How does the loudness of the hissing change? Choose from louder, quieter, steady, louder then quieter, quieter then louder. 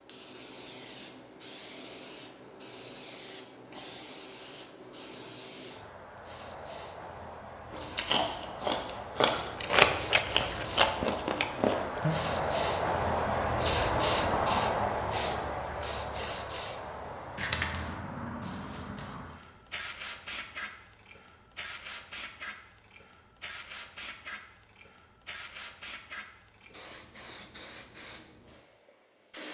louder then quieter.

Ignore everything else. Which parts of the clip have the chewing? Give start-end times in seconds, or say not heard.
7.7-12.2.